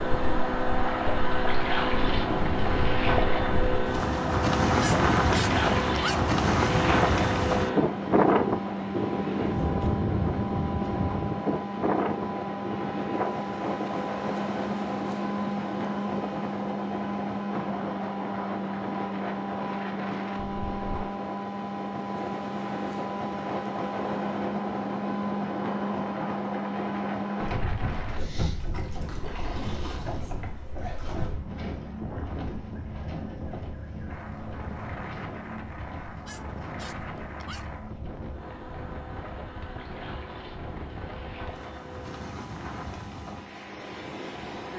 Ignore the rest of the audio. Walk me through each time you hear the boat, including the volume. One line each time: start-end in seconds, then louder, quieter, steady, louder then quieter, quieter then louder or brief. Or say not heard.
0.0-44.7 quieter.